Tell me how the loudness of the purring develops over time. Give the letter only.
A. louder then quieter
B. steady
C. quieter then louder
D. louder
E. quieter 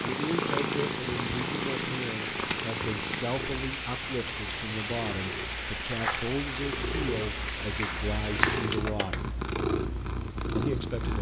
C.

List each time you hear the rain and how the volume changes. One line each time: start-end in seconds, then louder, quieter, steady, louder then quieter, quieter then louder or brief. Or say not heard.
0.0-8.8 steady.